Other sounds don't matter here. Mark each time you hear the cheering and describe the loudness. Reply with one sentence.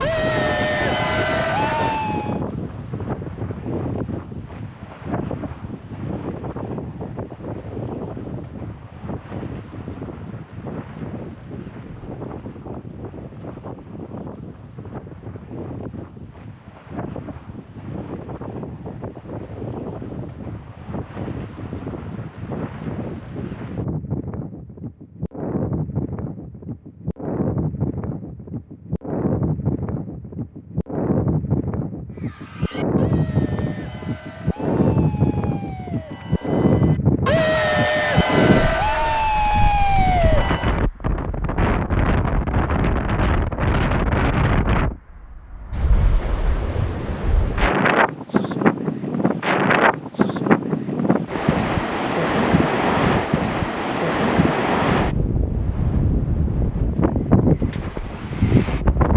The cheering can be heard briefly from 0.0 to 2.4 s; and from 32.1 to 40.8 s, getting louder.